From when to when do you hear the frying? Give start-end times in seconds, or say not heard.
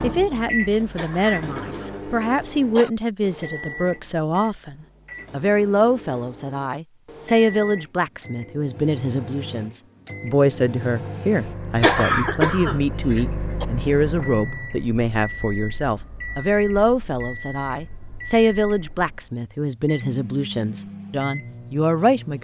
not heard.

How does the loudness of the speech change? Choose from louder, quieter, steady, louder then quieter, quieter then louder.
steady.